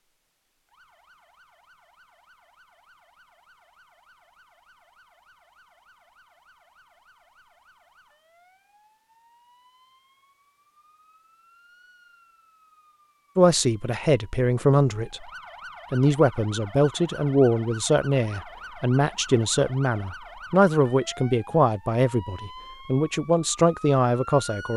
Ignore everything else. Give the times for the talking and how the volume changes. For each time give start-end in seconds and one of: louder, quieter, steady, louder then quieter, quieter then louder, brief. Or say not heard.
13.3-15.2 brief
15.9-24.7 steady.